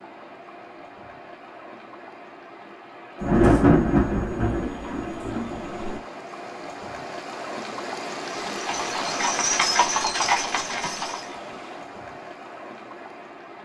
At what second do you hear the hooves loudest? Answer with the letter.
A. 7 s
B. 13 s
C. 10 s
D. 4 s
C.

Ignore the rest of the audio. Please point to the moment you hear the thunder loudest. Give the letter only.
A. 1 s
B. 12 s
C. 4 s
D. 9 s
C.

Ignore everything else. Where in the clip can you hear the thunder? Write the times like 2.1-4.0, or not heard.
3.2-6.0.